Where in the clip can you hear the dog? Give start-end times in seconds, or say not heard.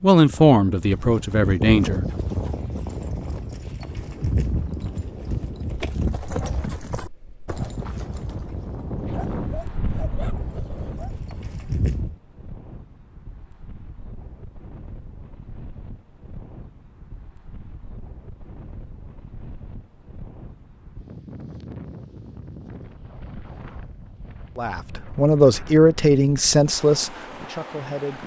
9.1-11.1.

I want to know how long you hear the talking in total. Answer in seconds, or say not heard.
6 s.